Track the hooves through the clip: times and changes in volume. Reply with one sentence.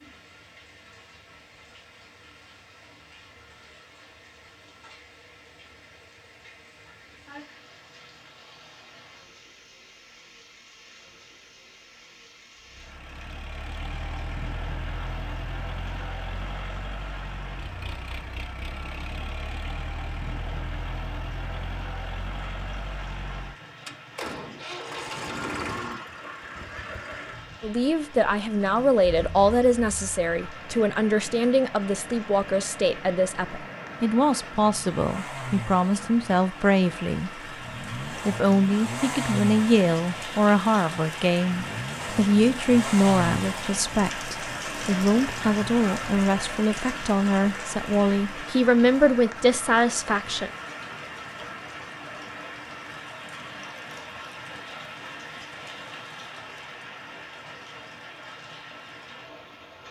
You can't hear the hooves here.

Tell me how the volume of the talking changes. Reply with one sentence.
The volume of the talking stays about the same.